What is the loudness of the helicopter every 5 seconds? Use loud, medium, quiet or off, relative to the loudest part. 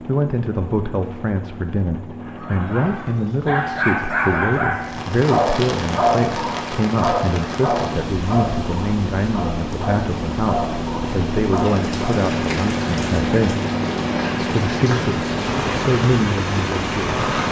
medium, medium, loud, loud.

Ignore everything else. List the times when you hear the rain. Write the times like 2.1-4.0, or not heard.
4.8-17.4.